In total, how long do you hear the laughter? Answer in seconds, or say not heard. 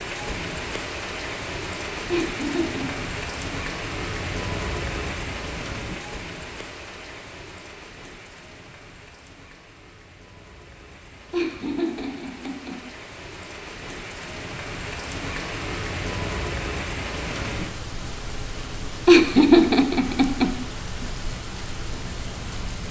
4 s.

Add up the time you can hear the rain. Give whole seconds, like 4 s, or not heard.
23 s.